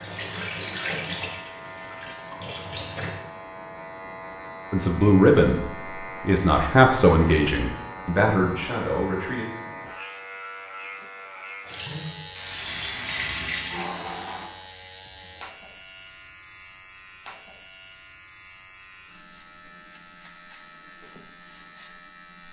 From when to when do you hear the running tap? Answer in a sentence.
The running tap can be heard from 0.0 to 3.1 s and from 11.7 to 14.5 s.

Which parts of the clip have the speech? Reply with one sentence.
The speech can be heard from 4.7 to 5.6 s and from 6.2 to 9.4 s.